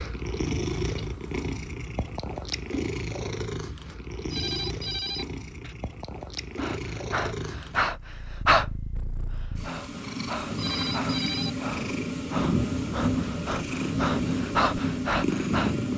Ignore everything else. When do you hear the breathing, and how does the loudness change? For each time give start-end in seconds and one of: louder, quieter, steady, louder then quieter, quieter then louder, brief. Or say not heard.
6.5-8.7 brief
9.3-15.8 louder.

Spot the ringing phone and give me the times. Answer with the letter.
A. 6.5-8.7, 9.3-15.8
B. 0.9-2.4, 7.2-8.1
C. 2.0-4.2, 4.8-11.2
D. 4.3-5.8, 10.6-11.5
D.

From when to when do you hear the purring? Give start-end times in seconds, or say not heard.
0.0-15.9.